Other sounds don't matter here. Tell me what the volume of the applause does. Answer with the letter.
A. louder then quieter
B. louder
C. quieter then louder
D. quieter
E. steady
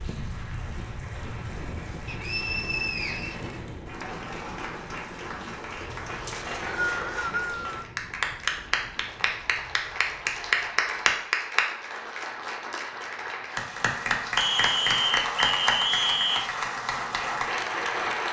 B.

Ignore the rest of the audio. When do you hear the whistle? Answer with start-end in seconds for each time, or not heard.
2.0-4.0, 6.2-7.8, 14.3-16.5.